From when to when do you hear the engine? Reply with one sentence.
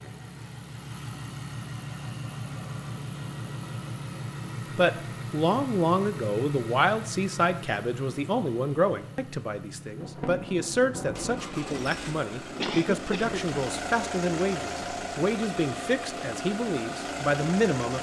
The engine can be heard from 0.0 to 17.9 s.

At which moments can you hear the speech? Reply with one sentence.
You can hear the speech from 4.8 to 17.9 s.